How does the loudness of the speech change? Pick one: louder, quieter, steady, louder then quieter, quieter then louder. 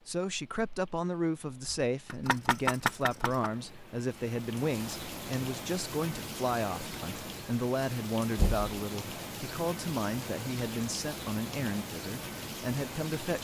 steady.